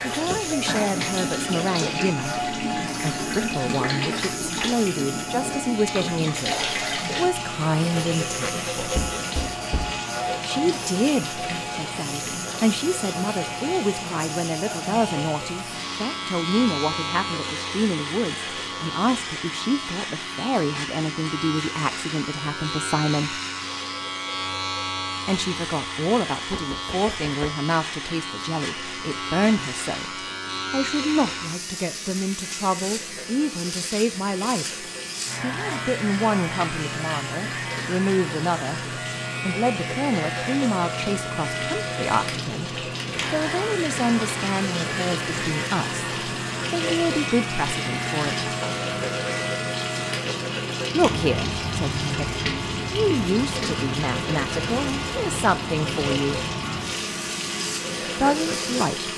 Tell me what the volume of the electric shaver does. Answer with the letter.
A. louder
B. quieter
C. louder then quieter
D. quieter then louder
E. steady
E.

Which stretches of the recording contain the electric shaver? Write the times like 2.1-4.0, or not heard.
0.0-59.1.